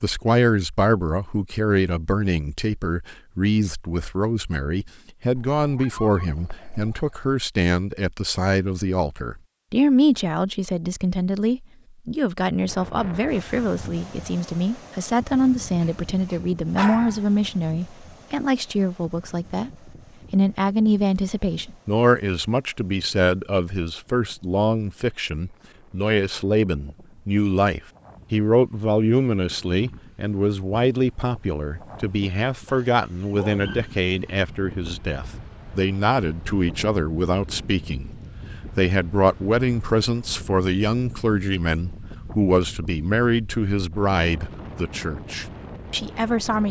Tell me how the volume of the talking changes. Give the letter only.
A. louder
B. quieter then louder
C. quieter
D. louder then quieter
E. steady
E.